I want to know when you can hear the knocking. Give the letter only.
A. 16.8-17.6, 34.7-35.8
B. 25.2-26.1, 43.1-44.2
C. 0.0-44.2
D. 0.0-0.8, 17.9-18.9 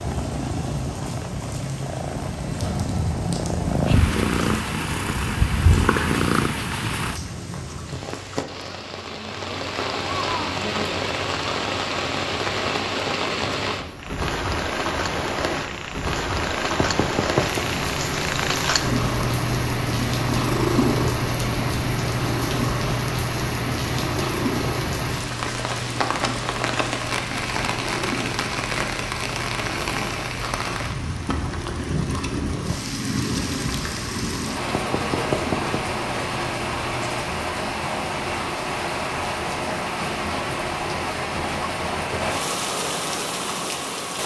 A.